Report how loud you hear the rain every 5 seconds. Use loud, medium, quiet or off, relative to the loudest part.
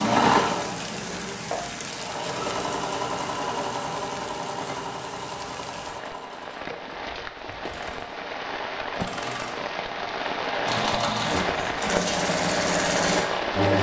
medium, medium, loud.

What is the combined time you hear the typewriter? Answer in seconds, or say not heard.
not heard.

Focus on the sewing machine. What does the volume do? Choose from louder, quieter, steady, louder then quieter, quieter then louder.
quieter then louder.